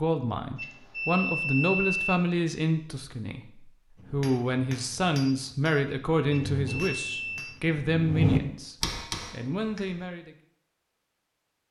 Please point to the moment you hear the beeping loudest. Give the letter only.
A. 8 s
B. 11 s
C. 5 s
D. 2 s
D.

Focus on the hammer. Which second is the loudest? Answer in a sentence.
The loudest moment of the hammer is at 8 seconds.